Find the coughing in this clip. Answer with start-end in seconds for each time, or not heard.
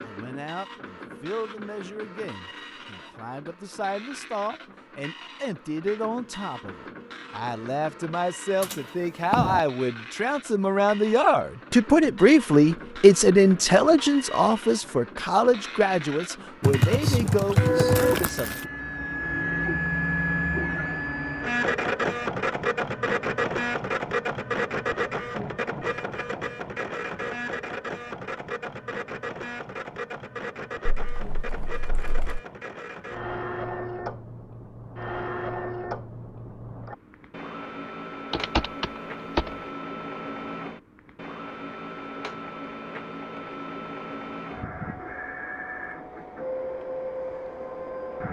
not heard.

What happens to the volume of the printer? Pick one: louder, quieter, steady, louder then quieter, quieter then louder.
louder then quieter.